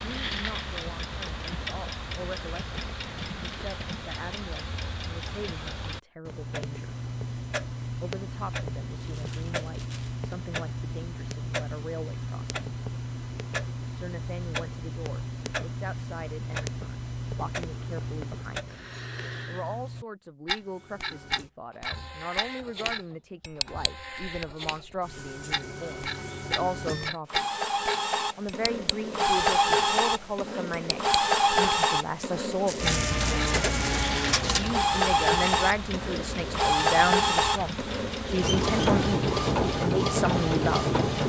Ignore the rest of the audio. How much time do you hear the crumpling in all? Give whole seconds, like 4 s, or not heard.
3 s.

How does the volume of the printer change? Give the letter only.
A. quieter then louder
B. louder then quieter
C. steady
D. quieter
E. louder
E.